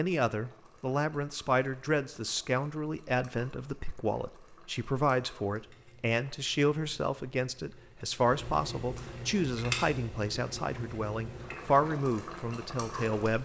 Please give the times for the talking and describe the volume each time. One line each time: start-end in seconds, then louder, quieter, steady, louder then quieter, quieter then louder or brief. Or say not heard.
0.0-13.4 steady.